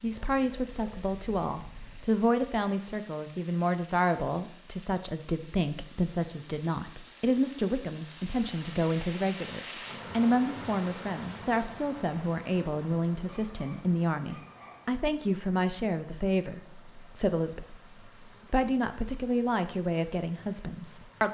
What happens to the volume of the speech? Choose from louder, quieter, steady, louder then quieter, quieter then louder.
steady.